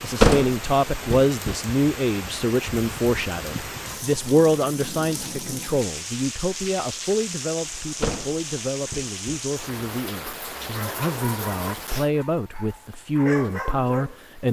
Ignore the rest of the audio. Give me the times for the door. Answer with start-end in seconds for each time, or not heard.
0.2-1.6, 8.0-9.4.